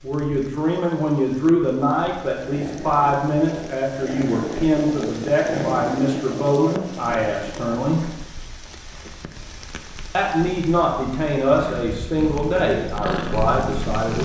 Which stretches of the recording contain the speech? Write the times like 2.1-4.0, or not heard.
0.0-8.0, 10.1-14.2.